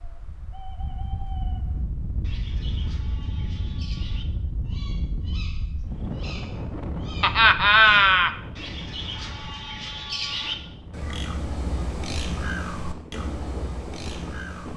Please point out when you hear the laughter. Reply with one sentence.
You can hear the laughter from 7.2 to 8.3 s.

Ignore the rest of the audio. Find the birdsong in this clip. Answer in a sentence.
The birdsong can be heard from 0.0 to 14.7 s.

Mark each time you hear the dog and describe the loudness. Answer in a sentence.
You can't hear the dog here.